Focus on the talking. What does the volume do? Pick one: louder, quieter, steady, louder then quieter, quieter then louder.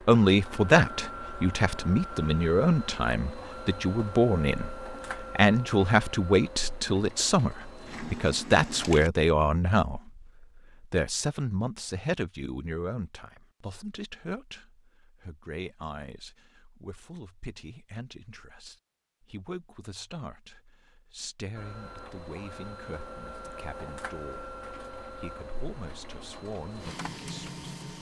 quieter.